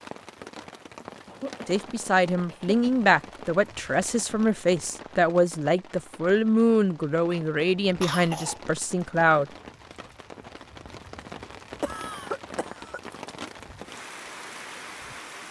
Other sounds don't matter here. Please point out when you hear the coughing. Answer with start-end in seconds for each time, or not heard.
1.2-3.0, 8.0-8.7, 11.8-13.0.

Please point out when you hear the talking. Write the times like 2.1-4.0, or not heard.
1.6-9.5.